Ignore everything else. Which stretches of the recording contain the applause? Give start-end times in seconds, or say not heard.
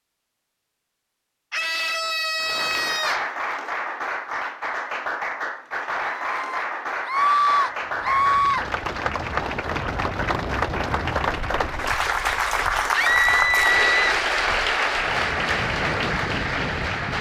2.4-17.1.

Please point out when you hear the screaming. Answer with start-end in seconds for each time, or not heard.
1.5-3.3, 6.3-8.7, 12.9-14.2.